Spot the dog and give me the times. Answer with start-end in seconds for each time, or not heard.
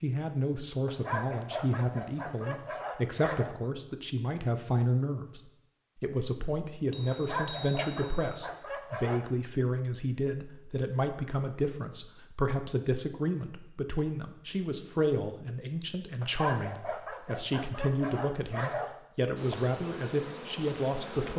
0.8-3.5, 7.1-9.2, 16.2-18.9.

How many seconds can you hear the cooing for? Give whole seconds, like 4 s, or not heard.
not heard.